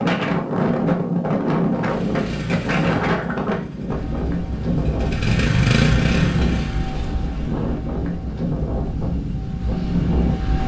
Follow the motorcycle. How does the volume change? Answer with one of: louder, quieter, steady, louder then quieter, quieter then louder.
quieter then louder.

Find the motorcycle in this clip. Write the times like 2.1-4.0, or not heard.
1.8-7.2.